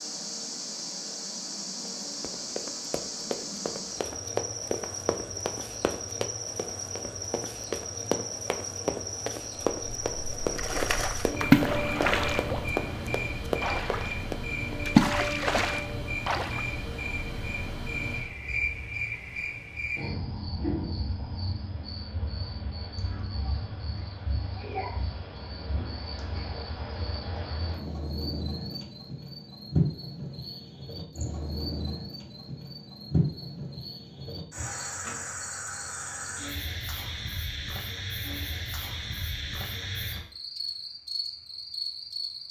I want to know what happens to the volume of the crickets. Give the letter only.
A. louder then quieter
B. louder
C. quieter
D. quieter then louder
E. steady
E.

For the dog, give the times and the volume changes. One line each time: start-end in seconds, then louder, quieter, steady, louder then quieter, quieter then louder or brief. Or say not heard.
not heard.